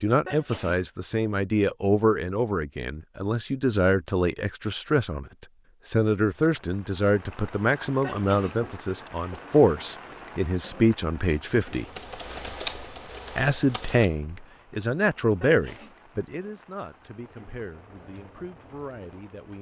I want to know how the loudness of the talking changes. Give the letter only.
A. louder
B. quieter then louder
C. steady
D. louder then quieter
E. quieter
E.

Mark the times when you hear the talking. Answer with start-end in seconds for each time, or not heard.
0.0-11.8, 13.3-19.5.